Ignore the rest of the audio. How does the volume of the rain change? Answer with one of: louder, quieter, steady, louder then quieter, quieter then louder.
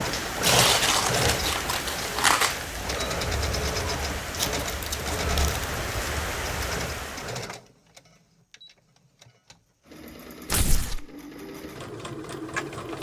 steady.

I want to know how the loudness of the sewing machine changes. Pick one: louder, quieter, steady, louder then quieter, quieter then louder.
quieter then louder.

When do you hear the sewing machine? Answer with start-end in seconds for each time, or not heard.
0.0-12.9.